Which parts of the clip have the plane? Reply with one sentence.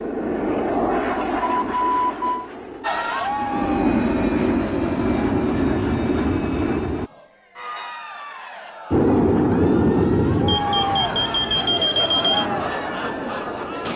The plane can be heard from 0.0 to 7.1 s and from 8.9 to 13.9 s.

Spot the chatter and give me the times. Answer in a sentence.
The chatter can be heard from 2.8 to 13.9 s.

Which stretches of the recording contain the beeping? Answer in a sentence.
You can hear the beeping from 1.4 to 2.5 s and from 10.4 to 12.4 s.